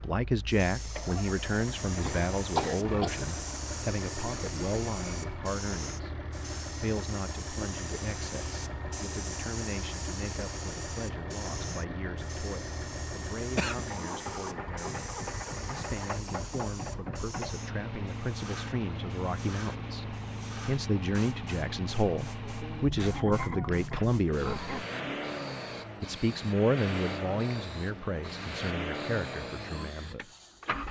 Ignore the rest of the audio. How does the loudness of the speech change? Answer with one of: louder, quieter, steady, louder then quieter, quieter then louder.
quieter then louder.